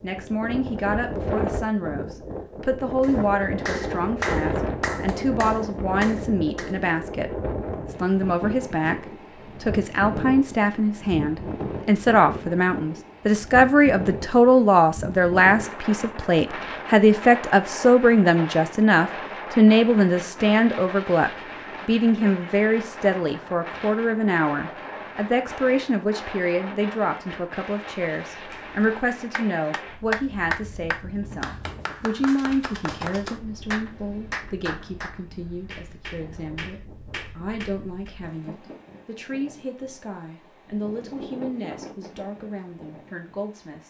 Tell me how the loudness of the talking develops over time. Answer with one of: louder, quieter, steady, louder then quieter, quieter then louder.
louder then quieter.